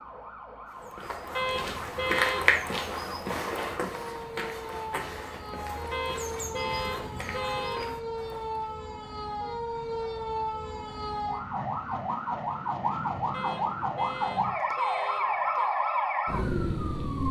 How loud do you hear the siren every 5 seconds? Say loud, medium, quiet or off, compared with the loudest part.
quiet, medium, loud, loud.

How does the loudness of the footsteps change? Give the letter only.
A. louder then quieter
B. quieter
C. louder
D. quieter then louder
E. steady
B.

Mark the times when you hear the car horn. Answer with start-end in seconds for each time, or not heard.
1.4-2.5, 5.9-8.0, 13.3-15.7.